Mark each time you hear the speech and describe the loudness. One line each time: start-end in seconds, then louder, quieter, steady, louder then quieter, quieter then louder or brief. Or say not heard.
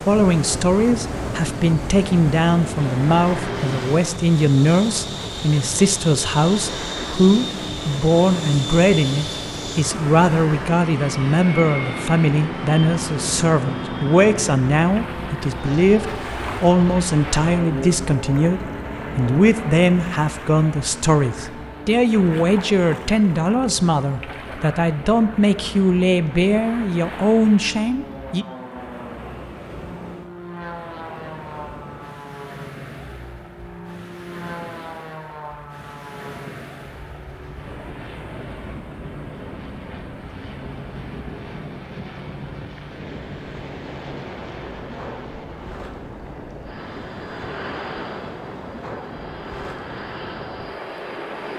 0.1-28.4 steady.